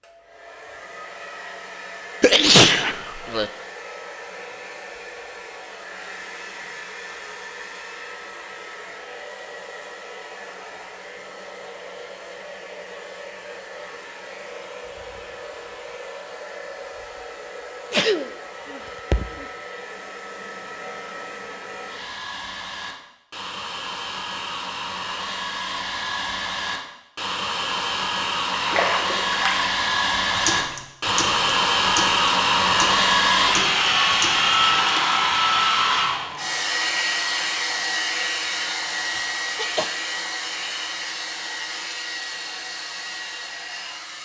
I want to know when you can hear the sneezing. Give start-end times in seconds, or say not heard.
2.2-3.5, 17.9-19.4, 39.1-39.9.